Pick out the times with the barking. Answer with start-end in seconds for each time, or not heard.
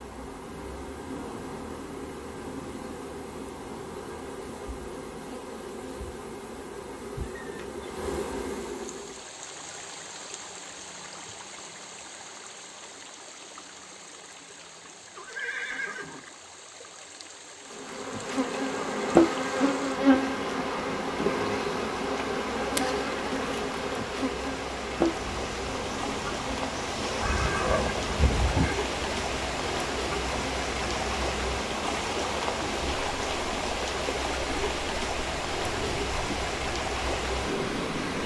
not heard.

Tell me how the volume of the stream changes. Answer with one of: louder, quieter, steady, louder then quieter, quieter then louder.
louder.